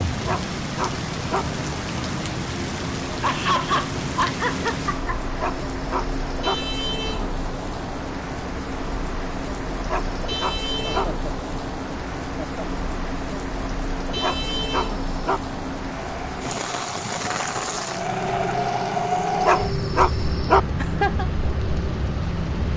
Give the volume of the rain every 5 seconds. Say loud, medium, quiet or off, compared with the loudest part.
loud, loud, loud, loud, medium.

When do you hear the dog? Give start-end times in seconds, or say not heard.
0.2-1.4, 5.3-6.5, 9.8-11.1, 14.2-15.4, 19.4-20.6.